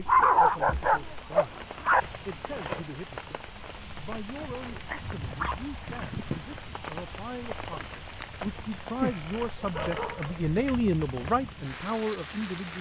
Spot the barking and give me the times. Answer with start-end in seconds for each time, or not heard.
0.1-2.0, 4.4-6.5, 9.0-10.6.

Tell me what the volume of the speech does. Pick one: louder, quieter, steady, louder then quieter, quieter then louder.
louder.